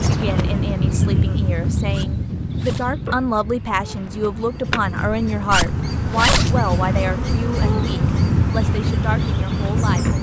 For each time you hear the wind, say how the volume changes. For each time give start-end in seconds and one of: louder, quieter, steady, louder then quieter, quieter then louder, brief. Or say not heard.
0.0-10.1 quieter then louder.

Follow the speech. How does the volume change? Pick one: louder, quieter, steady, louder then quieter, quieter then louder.
louder then quieter.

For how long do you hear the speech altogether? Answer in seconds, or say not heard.
10 s.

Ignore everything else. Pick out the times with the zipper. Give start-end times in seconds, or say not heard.
1.9-2.9, 5.5-6.5.